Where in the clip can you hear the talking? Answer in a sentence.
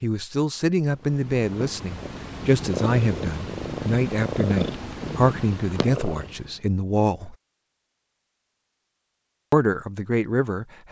The talking can be heard from 0.0 to 7.3 s and from 9.5 to 10.8 s.